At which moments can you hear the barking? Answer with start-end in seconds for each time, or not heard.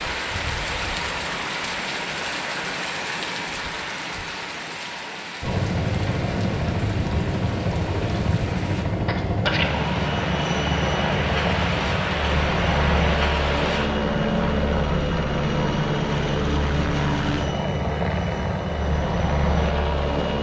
not heard.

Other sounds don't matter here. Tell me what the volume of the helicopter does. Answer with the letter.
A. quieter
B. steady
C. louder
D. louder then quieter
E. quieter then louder
B.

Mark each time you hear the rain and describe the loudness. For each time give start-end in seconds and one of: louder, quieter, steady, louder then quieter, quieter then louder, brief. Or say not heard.
0.0-13.9 quieter then louder.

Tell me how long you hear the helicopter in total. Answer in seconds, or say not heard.
15 s.